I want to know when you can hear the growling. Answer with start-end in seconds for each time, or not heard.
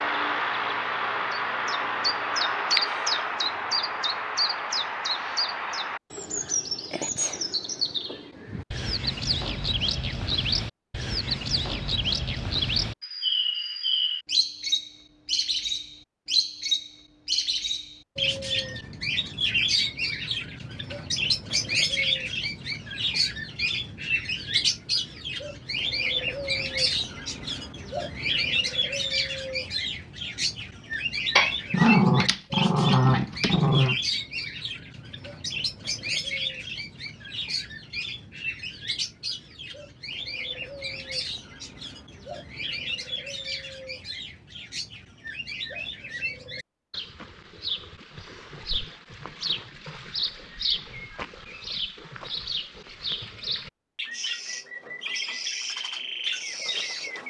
31.4-34.0.